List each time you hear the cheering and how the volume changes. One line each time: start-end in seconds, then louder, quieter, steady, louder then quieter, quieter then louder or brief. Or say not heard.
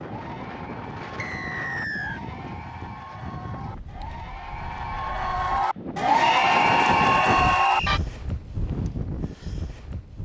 0.0-8.0 louder.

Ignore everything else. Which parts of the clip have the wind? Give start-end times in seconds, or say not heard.
0.0-10.1.